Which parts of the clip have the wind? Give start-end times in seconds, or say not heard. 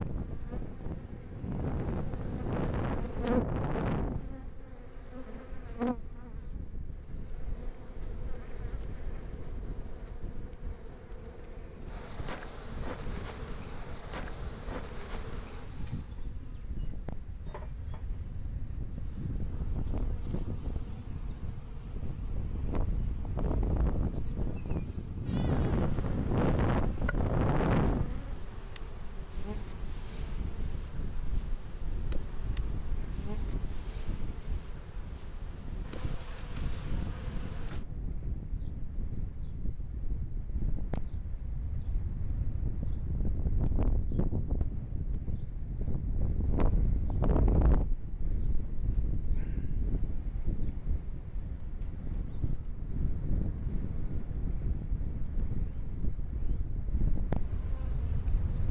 0.0-58.6.